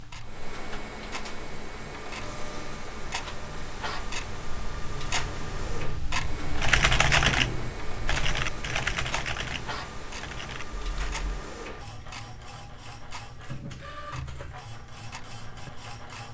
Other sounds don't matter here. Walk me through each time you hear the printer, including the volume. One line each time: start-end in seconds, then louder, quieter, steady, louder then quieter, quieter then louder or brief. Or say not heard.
0.0-16.2 steady.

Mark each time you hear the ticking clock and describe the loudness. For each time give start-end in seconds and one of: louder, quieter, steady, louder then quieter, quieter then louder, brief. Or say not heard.
0.0-16.2 louder then quieter.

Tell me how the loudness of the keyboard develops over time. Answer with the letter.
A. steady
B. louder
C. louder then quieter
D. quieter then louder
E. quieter
E.